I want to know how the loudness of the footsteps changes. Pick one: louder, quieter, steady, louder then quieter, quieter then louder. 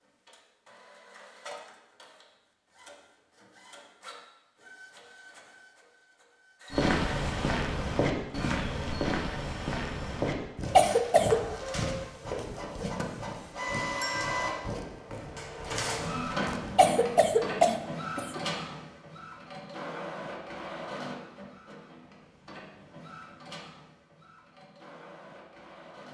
quieter.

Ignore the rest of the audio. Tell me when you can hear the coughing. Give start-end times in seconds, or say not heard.
10.8-11.4, 16.8-18.4.